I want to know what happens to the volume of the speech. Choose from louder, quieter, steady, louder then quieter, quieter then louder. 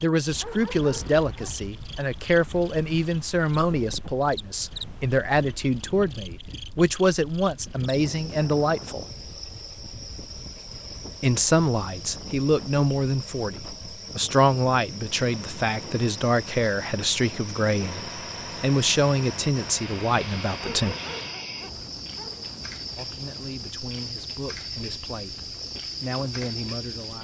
quieter.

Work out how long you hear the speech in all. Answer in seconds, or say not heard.
23 s.